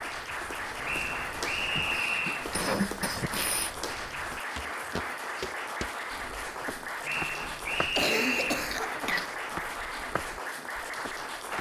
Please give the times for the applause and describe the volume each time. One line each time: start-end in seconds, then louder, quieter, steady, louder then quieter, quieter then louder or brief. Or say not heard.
0.0-11.5 steady.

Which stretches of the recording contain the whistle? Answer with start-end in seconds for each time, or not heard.
0.8-2.5, 7.0-8.7.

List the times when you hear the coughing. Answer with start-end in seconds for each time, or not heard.
1.8-3.7, 7.3-9.3.